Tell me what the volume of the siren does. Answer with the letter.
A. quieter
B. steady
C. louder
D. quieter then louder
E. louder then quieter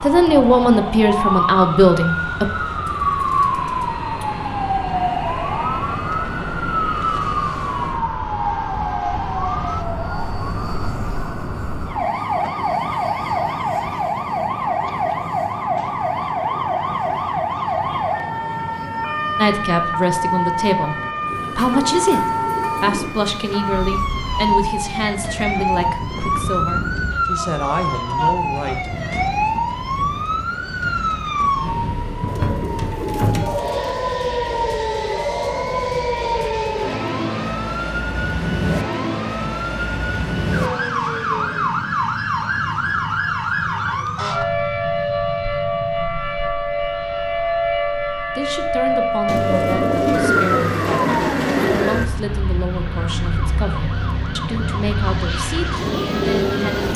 B.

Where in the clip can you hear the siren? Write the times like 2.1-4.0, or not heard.
0.0-56.9.